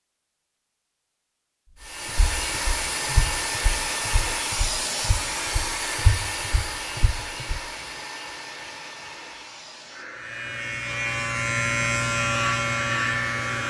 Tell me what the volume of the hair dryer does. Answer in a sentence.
The volume of the hair dryer goes down, then up.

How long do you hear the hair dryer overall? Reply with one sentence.
You can hear the hair dryer for 12 seconds altogether.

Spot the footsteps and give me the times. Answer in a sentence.
The footsteps can be heard from 2.1 to 7.6 s.